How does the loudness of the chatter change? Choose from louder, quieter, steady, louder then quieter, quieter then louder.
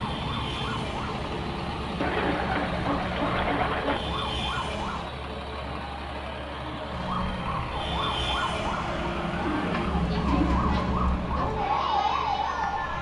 louder.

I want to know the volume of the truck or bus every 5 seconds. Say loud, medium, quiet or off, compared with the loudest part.
loud, loud, medium.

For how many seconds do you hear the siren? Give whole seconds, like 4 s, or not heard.
11 s.